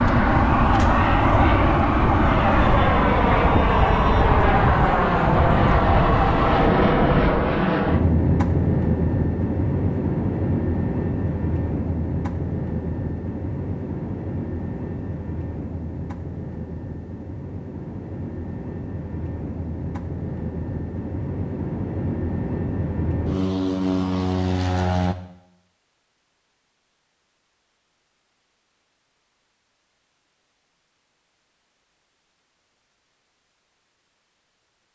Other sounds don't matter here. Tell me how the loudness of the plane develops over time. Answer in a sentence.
The volume of the plane goes down, then up.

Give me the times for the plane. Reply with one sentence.
You can hear the plane from 0.0 to 25.1 s.